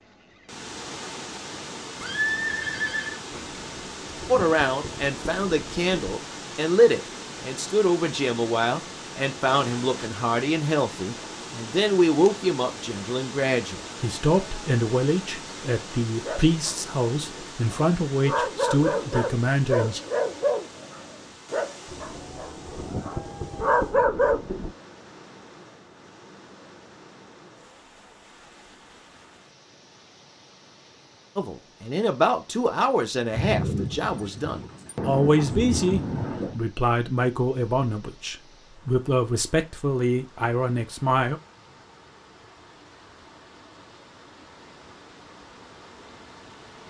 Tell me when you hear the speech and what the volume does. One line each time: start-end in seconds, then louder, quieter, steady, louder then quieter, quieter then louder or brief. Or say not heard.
4.2-20.0 steady
31.4-41.4 steady.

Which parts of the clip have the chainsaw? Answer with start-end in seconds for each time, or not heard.
not heard.